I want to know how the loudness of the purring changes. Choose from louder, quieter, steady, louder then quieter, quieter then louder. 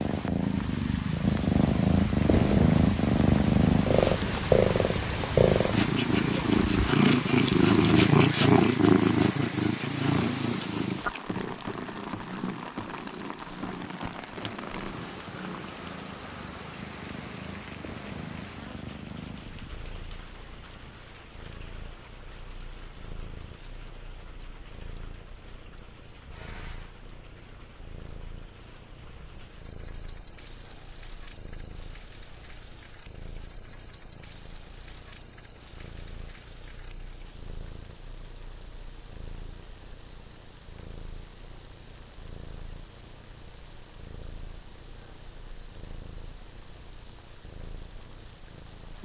quieter.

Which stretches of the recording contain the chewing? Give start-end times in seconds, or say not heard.
not heard.